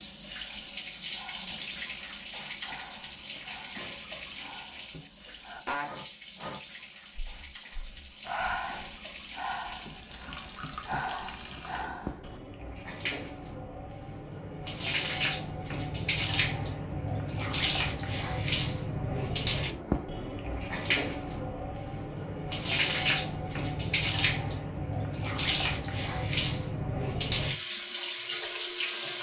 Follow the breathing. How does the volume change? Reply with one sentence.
The volume of the breathing goes up.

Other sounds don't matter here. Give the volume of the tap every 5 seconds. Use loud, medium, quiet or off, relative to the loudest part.
medium, quiet, medium, loud, loud, loud.